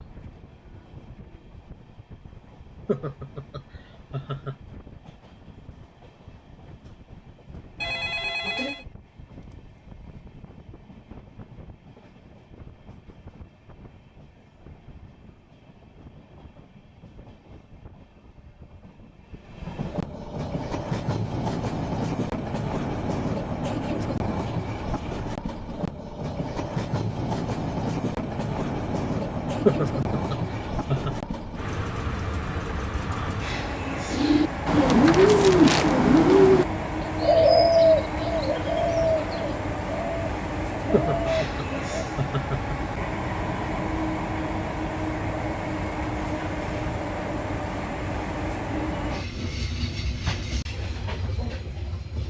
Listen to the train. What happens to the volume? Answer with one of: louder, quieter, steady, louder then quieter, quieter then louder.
louder.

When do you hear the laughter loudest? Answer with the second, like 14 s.
30 s.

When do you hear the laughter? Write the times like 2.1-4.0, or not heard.
2.9-4.5, 29.6-31.1, 40.9-42.8.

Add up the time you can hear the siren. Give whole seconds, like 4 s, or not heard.
not heard.